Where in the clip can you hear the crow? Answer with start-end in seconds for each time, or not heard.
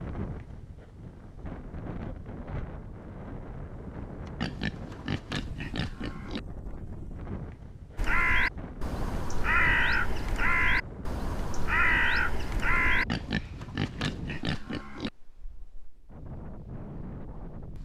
8.0-13.1.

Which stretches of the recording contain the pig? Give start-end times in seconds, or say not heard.
4.4-6.4, 13.1-15.1.